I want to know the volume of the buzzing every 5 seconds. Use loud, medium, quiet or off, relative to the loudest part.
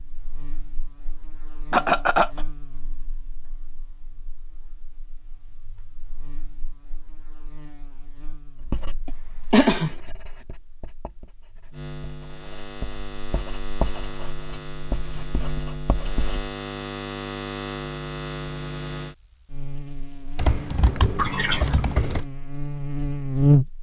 quiet, quiet, quiet, medium, loud.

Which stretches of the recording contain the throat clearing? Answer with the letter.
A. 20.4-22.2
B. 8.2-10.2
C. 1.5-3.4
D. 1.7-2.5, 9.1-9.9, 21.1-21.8
D.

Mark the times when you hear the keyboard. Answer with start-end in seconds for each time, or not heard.
20.4-22.2.